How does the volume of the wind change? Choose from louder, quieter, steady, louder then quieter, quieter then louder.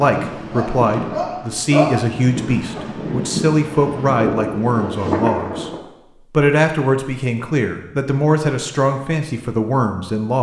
louder.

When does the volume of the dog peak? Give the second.
2 s.